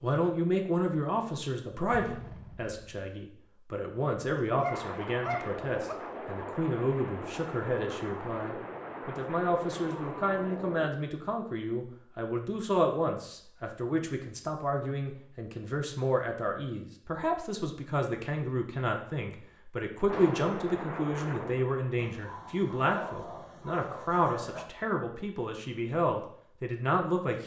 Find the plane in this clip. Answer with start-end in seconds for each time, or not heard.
4.7-10.9, 20.1-21.9.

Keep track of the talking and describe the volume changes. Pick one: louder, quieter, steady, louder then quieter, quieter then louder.
steady.